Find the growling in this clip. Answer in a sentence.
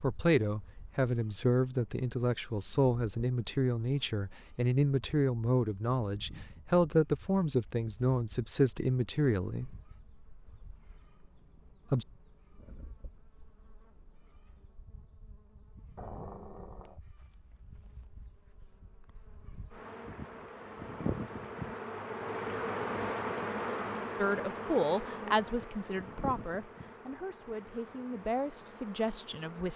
The growling can be heard from 15.9 to 17.0 s.